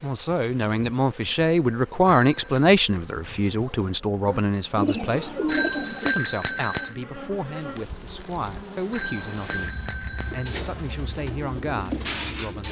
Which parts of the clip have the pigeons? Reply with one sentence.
You can hear the pigeons from 4.2 to 6.2 s and from 10.2 to 12.6 s.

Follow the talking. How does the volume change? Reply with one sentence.
The loudness of the talking goes down.